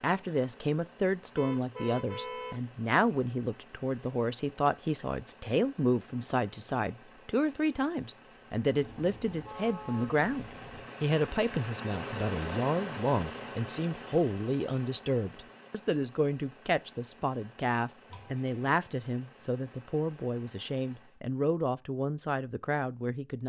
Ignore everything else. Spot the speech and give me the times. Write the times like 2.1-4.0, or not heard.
0.0-23.4.